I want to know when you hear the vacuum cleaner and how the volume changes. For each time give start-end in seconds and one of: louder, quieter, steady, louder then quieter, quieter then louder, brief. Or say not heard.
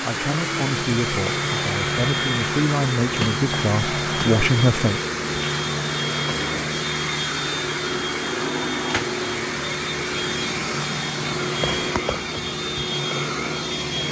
0.0-14.0 steady.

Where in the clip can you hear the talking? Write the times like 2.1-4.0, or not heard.
0.0-5.0.